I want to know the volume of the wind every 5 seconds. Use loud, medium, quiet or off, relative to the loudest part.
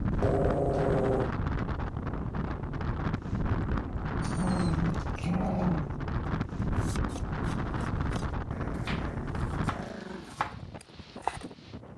loud, loud, quiet.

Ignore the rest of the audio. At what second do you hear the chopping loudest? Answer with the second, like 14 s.
11 s.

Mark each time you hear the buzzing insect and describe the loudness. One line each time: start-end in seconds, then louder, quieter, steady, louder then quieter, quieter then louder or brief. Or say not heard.
not heard.